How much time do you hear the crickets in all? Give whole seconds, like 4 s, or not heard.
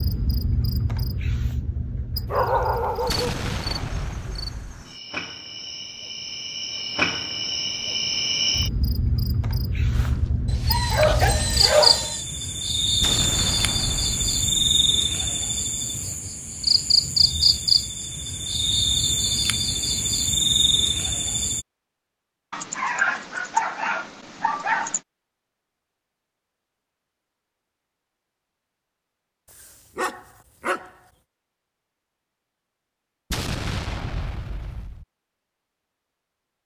22 s.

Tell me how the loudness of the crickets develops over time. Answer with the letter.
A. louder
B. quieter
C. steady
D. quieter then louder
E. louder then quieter
A.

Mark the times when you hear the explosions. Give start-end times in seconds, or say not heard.
3.0-4.8, 13.0-14.6, 33.3-35.0.